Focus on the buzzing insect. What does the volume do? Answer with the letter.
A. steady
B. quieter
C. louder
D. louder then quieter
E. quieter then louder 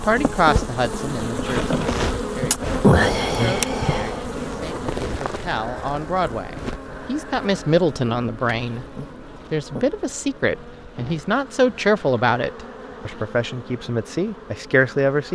B.